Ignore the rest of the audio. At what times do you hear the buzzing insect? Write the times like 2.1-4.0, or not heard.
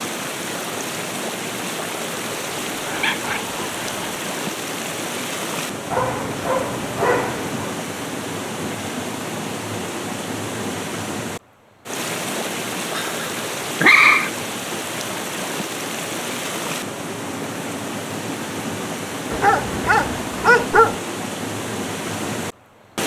not heard.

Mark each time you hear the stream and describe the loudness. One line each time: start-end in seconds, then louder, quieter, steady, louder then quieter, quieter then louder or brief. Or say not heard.
0.0-23.0 steady.